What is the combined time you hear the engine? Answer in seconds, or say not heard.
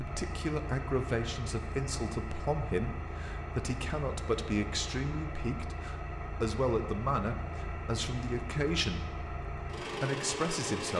11 s.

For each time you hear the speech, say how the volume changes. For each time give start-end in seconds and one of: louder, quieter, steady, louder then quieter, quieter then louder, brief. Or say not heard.
0.0-10.9 steady.